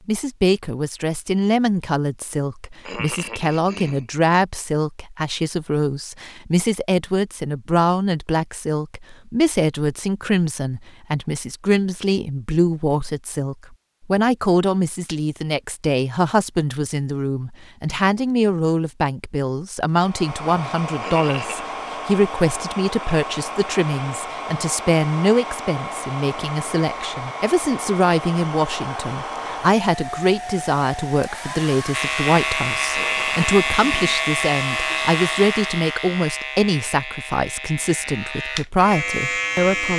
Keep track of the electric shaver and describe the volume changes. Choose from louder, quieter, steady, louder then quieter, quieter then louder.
quieter then louder.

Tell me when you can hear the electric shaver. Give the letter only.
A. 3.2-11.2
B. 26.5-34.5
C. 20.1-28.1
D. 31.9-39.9
D.